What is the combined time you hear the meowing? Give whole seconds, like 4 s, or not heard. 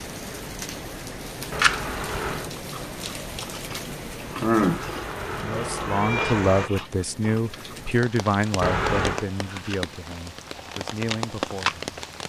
4 s.